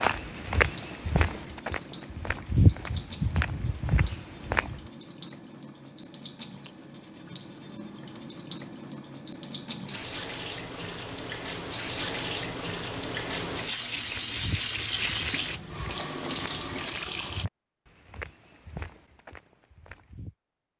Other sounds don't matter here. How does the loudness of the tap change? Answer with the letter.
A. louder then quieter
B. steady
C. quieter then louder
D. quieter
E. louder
E.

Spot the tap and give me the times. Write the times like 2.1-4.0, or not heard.
0.0-17.4.